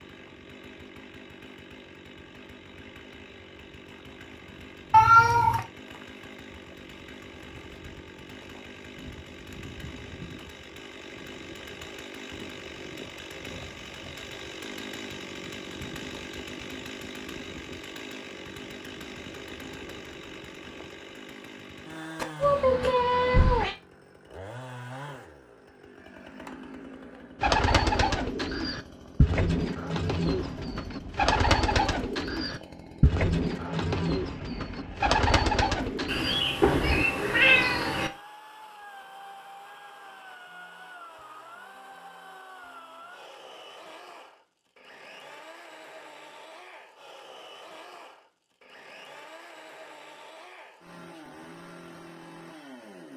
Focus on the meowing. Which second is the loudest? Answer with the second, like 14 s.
5 s.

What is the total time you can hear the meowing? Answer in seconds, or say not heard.
4 s.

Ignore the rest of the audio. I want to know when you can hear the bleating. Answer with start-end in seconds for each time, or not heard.
not heard.